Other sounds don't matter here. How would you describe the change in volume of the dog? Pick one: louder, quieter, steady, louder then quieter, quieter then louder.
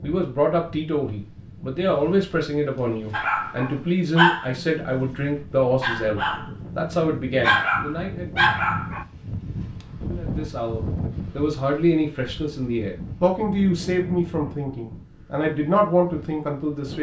quieter then louder.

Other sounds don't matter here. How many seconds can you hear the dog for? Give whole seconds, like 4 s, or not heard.
6 s.